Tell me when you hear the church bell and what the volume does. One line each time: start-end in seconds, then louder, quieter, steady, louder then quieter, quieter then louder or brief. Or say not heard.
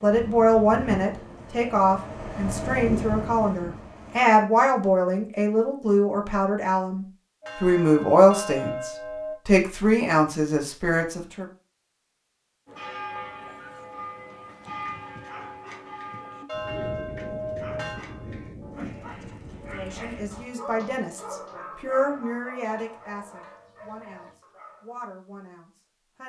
7.4-9.3 brief
12.7-24.4 quieter.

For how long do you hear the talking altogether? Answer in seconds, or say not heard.
18 s.